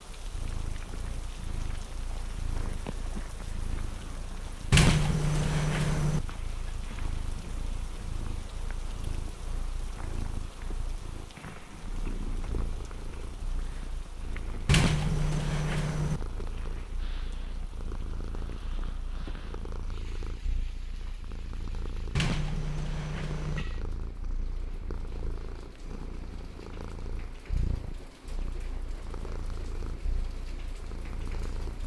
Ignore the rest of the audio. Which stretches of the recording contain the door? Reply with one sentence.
The door can be heard from 4.7 to 6.2 s, from 14.7 to 16.2 s and from 22.1 to 23.6 s.